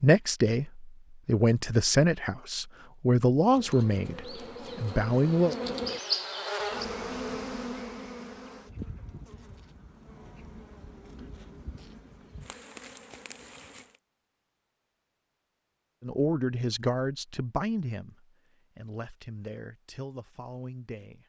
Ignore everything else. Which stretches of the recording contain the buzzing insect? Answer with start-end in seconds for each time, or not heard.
3.5-14.0.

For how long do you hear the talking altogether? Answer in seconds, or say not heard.
11 s.